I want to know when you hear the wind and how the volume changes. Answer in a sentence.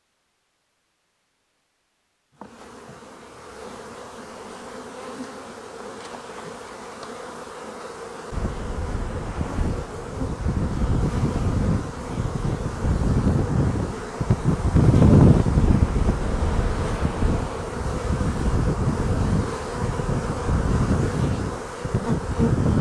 The wind can be heard from 8.3 to 22.7 s, getting louder then quieter.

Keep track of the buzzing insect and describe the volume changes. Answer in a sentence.
The volume of the buzzing insect goes up.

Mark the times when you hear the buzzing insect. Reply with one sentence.
You can hear the buzzing insect from 2.3 to 22.7 s.